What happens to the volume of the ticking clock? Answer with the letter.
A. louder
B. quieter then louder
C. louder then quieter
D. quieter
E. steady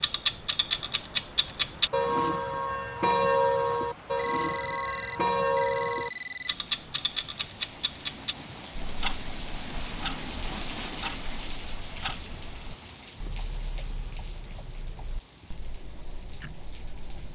D.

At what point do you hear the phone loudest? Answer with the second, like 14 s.
6 s.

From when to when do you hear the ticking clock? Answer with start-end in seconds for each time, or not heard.
0.0-17.2.